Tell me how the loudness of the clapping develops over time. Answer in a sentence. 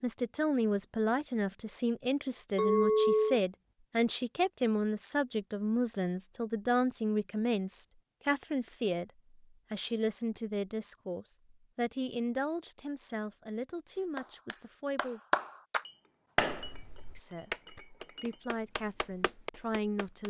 The loudness of the clapping goes down, then up.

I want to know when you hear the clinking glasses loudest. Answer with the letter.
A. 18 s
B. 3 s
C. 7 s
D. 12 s
B.